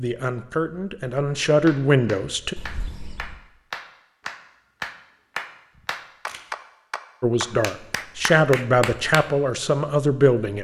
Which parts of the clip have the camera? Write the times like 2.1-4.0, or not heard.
2.5-3.4, 5.8-6.4.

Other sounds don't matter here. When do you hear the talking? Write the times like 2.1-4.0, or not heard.
0.0-2.5, 7.2-10.5.